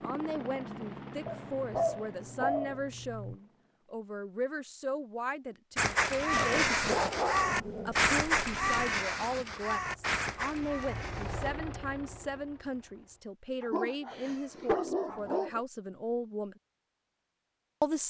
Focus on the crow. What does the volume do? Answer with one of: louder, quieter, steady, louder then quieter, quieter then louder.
quieter.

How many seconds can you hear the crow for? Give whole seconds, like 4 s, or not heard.
6 s.